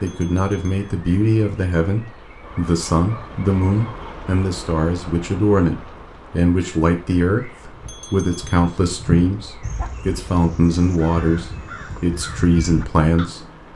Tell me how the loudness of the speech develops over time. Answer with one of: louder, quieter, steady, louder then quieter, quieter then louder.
steady.